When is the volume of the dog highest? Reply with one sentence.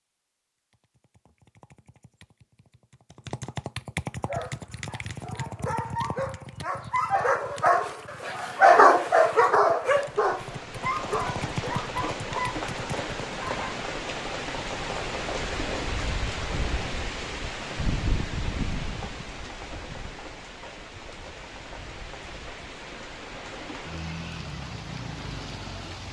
The volume of the dog peaks at 9 seconds.